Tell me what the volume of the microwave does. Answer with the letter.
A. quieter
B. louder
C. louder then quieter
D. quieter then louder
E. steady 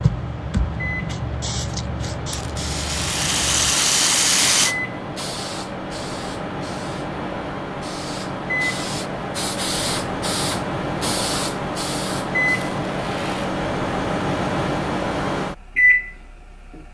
B.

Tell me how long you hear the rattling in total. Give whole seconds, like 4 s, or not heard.
3 s.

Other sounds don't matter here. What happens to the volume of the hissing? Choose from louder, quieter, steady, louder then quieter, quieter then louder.
quieter then louder.